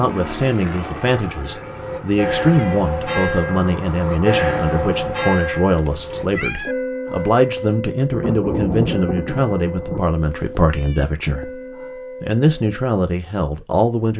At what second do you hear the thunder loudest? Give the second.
9 s.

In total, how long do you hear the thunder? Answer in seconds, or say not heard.
2 s.